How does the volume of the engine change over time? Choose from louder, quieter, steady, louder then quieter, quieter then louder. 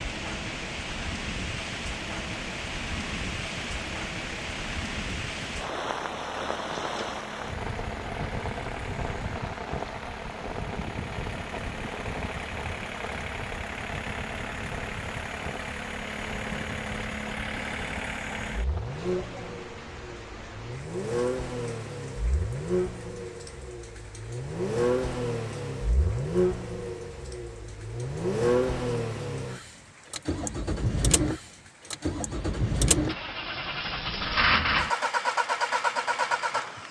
louder.